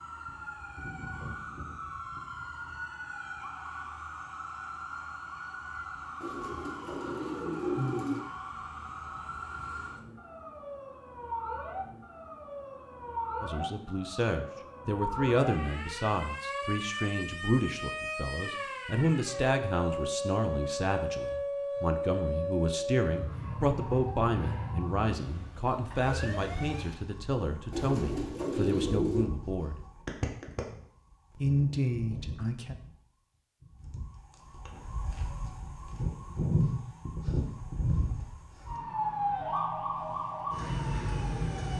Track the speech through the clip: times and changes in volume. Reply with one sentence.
The speech can be heard from 13.4 to 29.8 s, at a steady volume; and briefly from 31.4 to 32.8 s.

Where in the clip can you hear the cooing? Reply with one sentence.
You can hear the cooing from 6.2 to 8.2 s and from 27.7 to 29.3 s.